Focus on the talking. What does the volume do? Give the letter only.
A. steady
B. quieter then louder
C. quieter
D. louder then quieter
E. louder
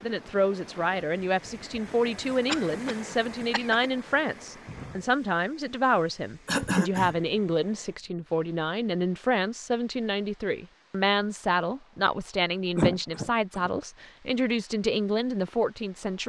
A.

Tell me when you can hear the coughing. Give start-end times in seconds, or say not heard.
2.5-3.9, 6.5-7.2, 12.8-13.7.